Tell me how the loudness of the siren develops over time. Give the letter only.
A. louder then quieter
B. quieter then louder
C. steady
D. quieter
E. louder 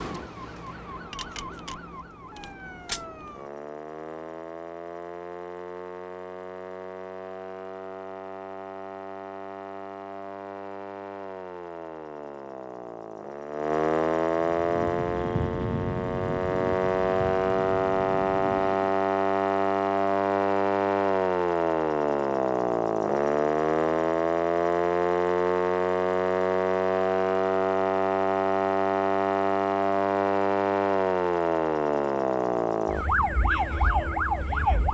E.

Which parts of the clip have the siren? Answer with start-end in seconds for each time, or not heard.
0.0-34.8.